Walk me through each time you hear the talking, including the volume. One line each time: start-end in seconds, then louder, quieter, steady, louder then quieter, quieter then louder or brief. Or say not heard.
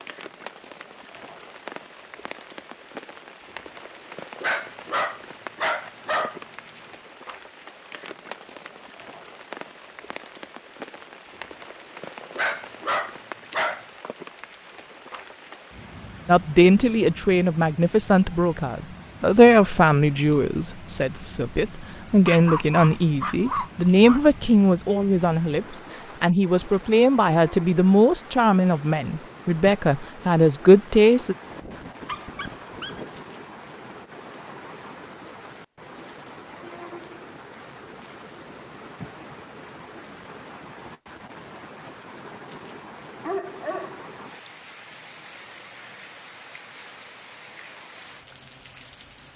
16.2-31.4 steady.